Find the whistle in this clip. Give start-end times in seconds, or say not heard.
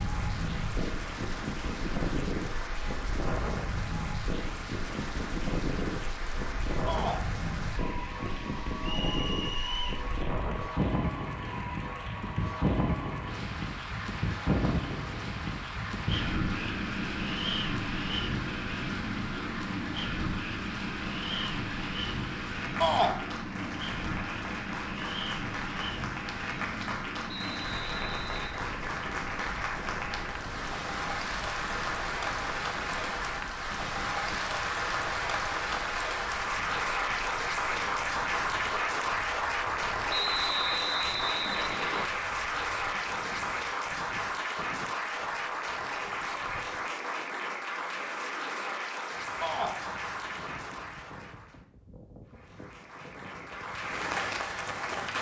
8.8-10.1, 27.2-28.5, 40.0-42.1.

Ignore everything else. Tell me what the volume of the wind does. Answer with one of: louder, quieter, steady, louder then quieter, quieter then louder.
quieter.